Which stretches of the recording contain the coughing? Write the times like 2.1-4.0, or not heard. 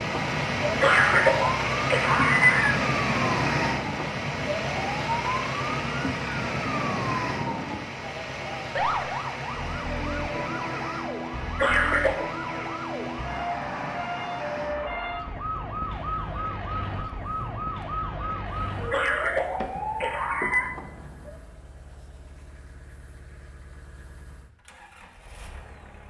0.8-2.8, 11.6-12.2, 18.9-20.7.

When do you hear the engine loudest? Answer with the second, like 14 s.
3 s.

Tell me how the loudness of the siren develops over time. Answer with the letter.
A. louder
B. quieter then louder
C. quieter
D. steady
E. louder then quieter
D.